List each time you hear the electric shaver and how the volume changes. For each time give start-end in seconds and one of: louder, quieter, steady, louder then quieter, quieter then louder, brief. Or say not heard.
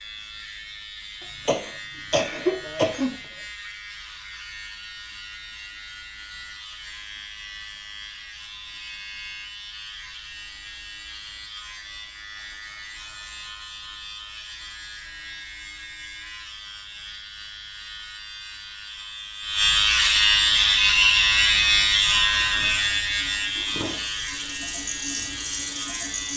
0.0-26.3 louder.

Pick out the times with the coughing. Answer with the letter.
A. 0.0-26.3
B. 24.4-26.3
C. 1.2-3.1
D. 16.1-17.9
C.